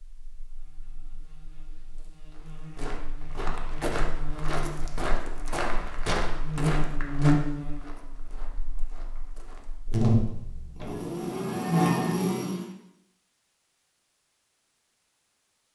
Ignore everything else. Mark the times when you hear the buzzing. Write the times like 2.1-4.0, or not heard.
0.0-12.7.